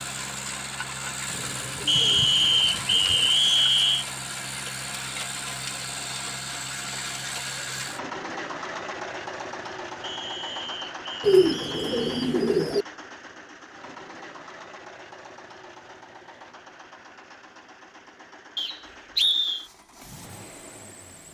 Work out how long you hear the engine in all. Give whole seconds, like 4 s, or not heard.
21 s.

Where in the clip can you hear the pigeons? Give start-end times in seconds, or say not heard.
1.2-3.3, 11.2-12.8.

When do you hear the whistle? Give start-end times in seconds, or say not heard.
1.9-4.0, 10.0-12.3, 18.6-19.6.